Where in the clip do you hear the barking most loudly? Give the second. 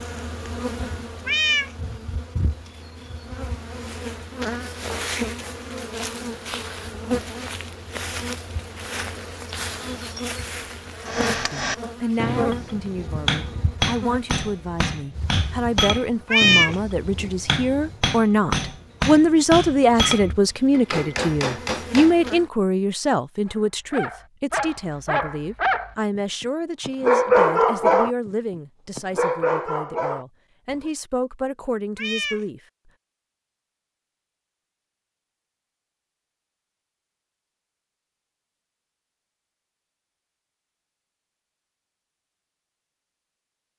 27 s.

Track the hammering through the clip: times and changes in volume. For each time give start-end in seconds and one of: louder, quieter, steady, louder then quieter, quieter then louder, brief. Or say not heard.
11.1-22.1 steady.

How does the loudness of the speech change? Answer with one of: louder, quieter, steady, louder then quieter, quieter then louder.
louder then quieter.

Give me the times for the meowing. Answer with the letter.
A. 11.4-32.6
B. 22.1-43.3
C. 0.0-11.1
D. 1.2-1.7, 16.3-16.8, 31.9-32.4
D.